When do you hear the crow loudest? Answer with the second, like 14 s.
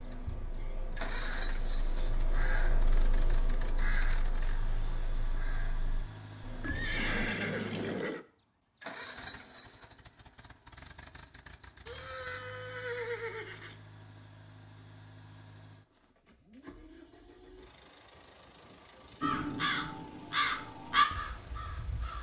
21 s.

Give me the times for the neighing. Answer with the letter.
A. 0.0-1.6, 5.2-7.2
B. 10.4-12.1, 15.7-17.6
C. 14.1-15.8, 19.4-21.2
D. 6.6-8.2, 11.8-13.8
D.